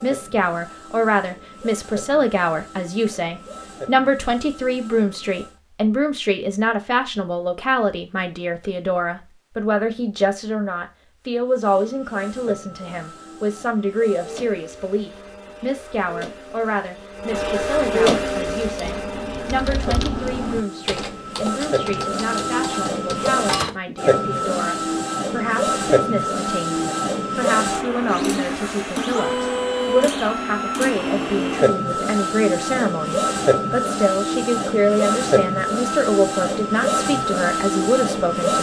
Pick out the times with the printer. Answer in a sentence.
You can hear the printer from 0.0 to 5.5 s and from 11.4 to 38.5 s.